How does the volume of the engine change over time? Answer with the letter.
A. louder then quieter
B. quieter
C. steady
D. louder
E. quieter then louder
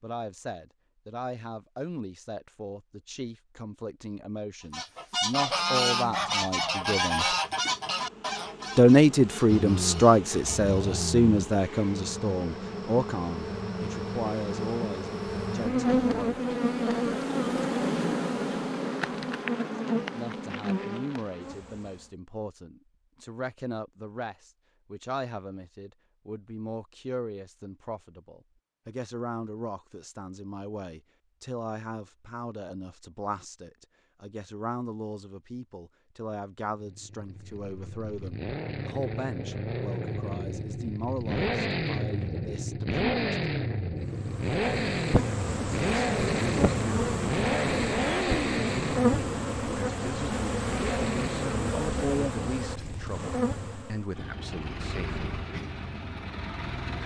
A.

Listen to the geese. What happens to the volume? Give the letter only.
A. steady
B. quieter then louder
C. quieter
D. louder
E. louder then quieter
C.